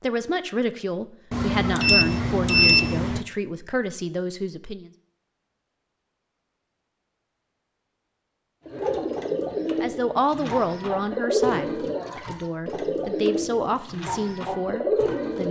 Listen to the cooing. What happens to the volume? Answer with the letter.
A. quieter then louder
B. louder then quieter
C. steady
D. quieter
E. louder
C.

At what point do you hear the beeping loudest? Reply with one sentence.
The loudest moment of the beeping is at 3 seconds.